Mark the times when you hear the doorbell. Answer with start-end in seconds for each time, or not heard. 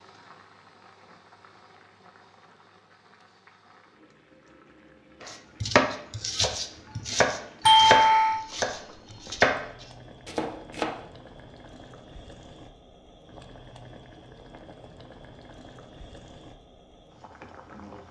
7.7-8.4.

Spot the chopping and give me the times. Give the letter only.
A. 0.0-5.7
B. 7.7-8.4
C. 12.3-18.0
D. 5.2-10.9
D.